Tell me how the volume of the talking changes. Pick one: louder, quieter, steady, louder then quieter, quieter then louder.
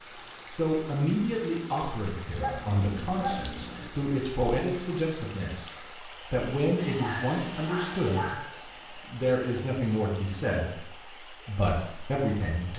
steady.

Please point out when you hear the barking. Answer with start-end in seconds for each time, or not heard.
2.2-3.9, 6.9-8.5.